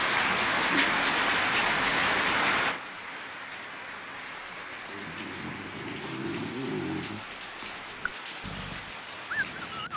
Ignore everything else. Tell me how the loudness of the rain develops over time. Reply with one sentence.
The volume of the rain goes down.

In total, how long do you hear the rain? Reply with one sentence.
You can hear the rain for 10 seconds altogether.